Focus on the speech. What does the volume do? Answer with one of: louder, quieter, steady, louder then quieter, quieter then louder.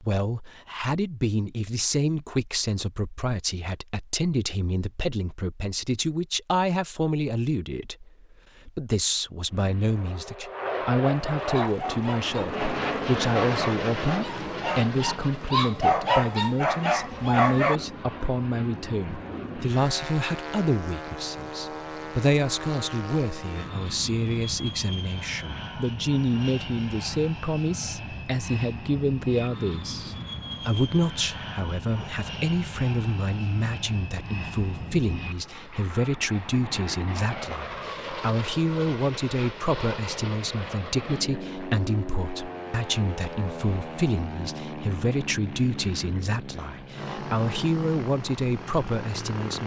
steady.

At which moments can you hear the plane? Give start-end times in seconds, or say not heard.
9.4-49.6.